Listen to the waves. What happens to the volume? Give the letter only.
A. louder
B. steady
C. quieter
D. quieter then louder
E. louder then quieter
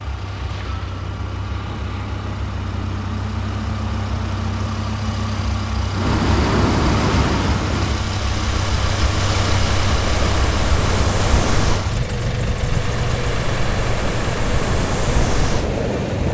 A.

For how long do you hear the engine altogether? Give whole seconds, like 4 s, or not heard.
16 s.